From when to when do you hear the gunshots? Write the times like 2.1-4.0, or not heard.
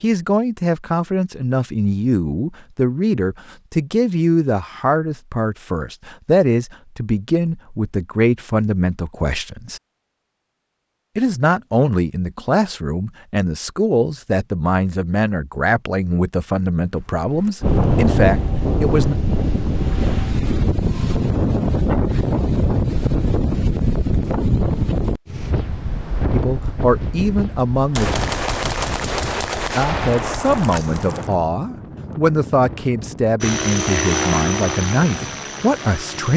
27.9-31.3.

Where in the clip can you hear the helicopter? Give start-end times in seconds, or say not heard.
33.4-36.3.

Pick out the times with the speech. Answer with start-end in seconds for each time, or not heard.
0.0-9.8, 11.2-19.1, 26.3-28.1, 29.8-36.3.